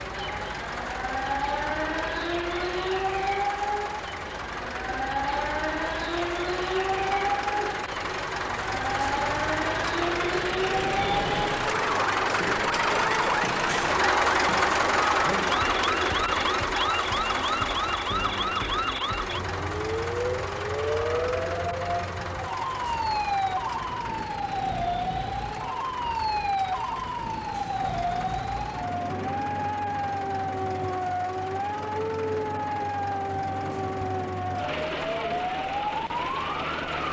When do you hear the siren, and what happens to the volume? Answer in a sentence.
You can hear the siren from 0.0 to 37.0 s, at a steady volume.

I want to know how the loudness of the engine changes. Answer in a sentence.
The volume of the engine goes up, then down.